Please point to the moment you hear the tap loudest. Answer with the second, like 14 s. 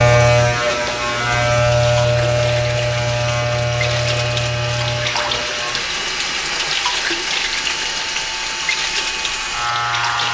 7 s.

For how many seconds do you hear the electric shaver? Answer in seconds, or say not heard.
10 s.